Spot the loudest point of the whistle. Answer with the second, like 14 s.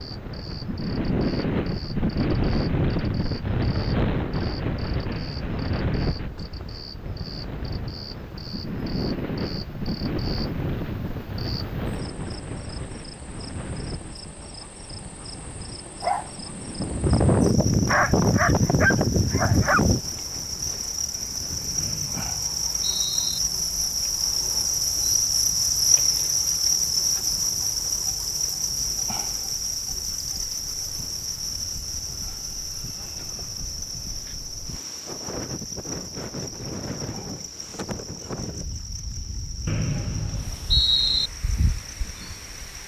41 s.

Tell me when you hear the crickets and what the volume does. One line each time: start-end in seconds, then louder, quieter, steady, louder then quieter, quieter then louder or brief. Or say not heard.
0.0-42.8 louder then quieter.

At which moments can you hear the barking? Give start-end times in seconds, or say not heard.
16.0-20.0.